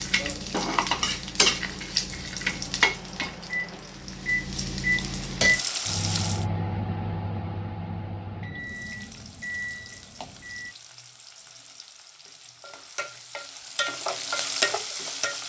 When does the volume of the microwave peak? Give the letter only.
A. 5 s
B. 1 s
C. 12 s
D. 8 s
A.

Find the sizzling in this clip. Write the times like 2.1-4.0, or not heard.
0.0-6.5, 8.6-15.4.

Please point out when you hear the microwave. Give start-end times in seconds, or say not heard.
0.0-10.8.